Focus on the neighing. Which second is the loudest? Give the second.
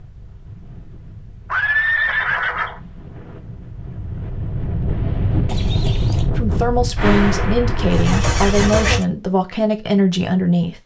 2 s.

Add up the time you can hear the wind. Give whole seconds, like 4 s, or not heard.
9 s.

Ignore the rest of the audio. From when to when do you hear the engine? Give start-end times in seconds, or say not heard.
7.0-9.1.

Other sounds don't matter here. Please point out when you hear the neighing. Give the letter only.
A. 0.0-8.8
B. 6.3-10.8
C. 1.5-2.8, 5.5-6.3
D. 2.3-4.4
C.